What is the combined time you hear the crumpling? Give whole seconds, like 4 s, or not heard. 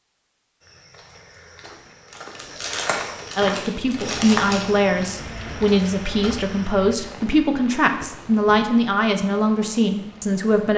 3 s.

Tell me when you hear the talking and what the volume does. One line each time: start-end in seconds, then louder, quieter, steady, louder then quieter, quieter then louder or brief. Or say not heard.
3.4-10.7 steady.